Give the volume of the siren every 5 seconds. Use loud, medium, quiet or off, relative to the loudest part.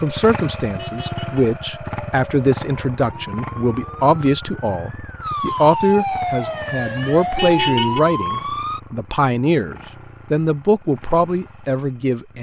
quiet, loud, off.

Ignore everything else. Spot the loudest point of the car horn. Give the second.
8 s.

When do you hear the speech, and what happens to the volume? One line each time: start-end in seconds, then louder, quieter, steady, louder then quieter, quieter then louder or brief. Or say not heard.
0.0-12.3 steady.